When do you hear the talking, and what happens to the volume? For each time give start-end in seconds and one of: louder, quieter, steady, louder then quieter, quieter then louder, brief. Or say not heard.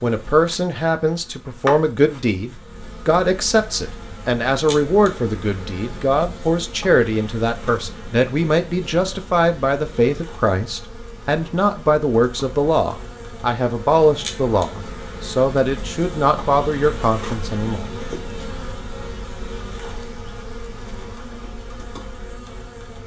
0.0-17.9 steady.